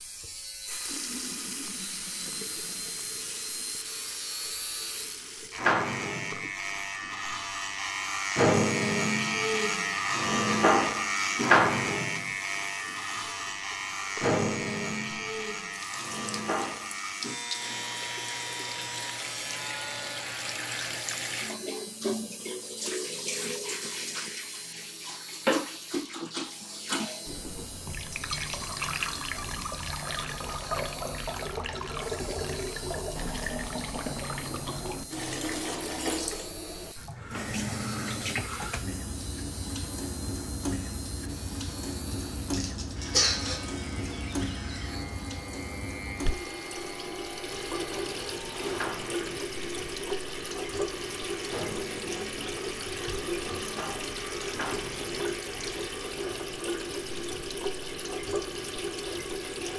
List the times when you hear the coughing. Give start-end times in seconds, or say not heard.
42.1-43.6.